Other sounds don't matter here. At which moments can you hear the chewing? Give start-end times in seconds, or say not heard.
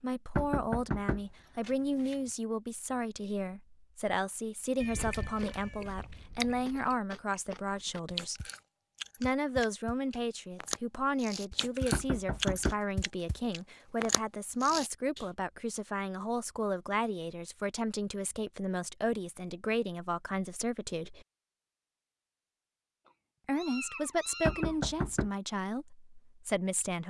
5.0-15.2.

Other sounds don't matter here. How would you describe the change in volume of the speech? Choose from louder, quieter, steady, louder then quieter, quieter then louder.
steady.